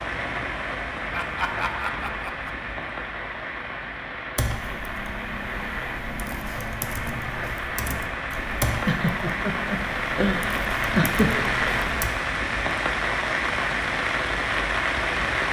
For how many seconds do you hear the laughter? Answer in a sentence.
You can hear the laughter for 4 seconds altogether.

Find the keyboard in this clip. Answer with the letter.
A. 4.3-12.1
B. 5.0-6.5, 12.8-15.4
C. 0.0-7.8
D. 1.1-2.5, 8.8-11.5
A.